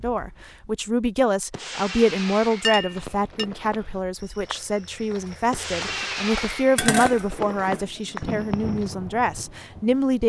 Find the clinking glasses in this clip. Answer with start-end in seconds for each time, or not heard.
2.6-3.5, 6.8-8.3.